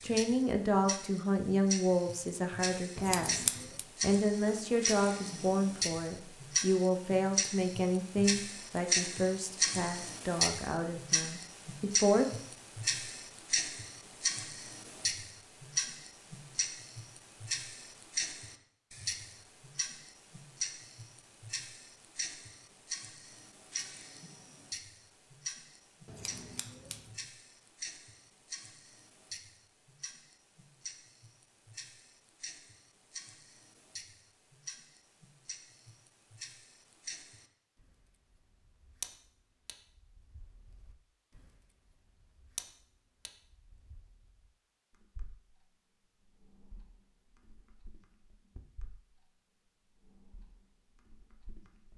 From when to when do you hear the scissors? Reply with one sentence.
You can hear the scissors from 3.0 to 3.9 s and from 26.1 to 27.1 s.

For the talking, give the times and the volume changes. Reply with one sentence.
The talking can be heard from 0.0 to 12.2 s, getting quieter.